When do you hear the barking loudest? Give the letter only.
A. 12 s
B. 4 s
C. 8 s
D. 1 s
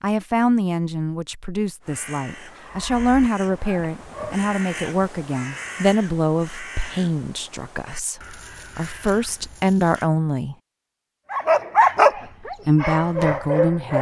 A.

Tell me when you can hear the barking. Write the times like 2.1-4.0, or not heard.
2.6-4.5, 11.3-13.9.